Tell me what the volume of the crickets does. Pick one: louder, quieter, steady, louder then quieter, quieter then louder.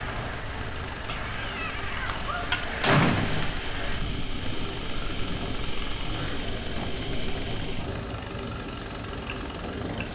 louder.